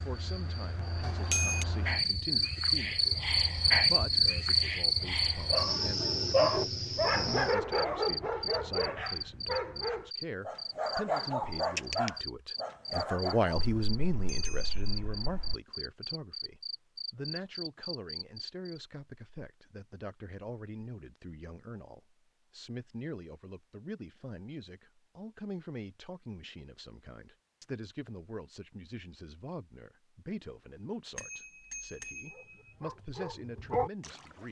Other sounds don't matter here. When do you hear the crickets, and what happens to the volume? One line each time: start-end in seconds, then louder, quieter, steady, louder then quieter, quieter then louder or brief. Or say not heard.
0.0-18.8 quieter.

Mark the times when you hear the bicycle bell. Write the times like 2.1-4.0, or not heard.
1.1-1.6, 13.6-15.6, 31.1-32.5.